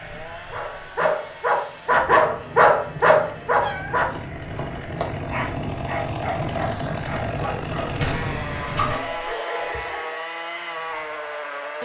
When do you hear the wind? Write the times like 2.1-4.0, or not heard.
0.0-8.9.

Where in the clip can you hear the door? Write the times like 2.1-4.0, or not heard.
7.8-9.3.